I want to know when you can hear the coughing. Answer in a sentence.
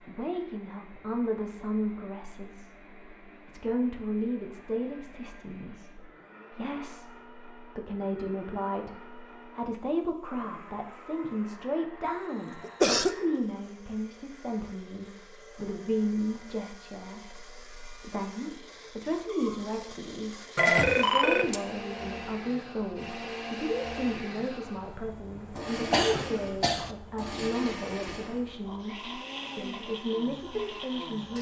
You can hear the coughing from 12.0 to 13.2 s and from 25.9 to 26.9 s.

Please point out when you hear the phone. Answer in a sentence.
The phone can be heard from 20.6 to 21.6 s.